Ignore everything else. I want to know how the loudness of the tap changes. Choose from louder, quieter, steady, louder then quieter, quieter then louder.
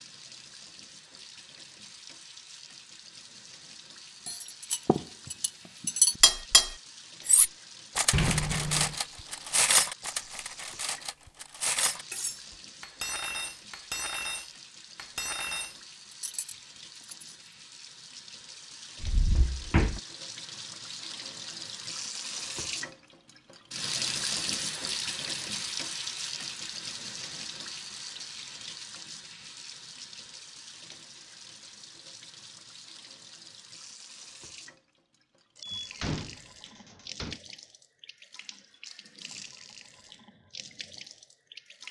louder then quieter.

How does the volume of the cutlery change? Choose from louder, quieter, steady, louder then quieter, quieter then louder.
quieter.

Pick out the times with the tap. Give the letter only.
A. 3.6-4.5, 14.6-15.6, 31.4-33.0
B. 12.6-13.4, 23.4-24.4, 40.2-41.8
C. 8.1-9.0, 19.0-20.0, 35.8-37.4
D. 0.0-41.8
D.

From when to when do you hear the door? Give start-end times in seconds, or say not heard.
8.1-9.0, 19.0-20.0, 35.8-37.4.